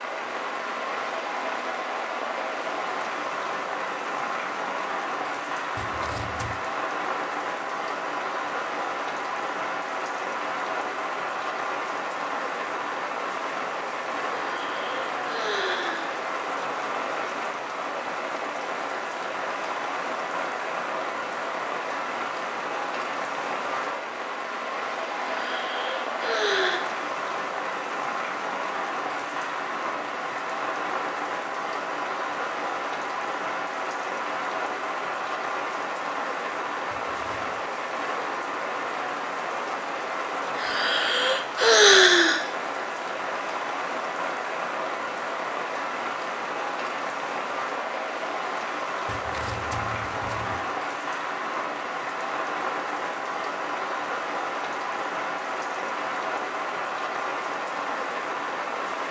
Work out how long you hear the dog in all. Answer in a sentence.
You can't hear the dog here.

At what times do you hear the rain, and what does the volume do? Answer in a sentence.
You can hear the rain from 0.0 to 59.0 s, at a steady volume.